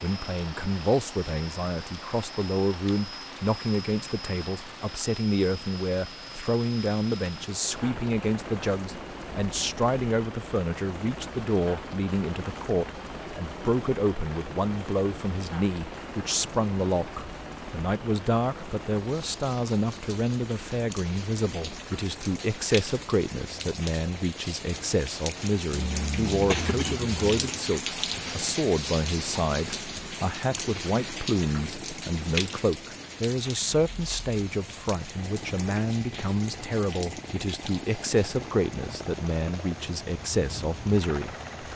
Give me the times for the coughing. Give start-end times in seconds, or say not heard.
25.7-27.6.